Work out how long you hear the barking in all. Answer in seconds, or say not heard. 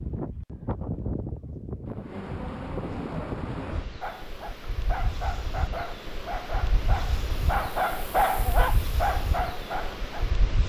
6 s.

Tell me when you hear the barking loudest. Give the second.
8 s.